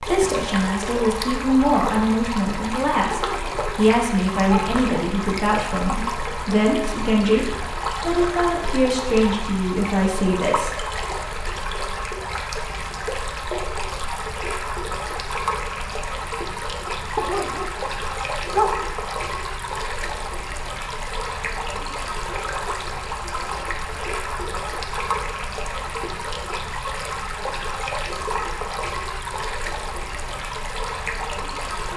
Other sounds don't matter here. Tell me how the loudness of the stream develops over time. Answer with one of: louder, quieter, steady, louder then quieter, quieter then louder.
steady.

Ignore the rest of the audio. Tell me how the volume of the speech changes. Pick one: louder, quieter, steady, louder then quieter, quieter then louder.
steady.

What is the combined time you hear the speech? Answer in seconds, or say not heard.
11 s.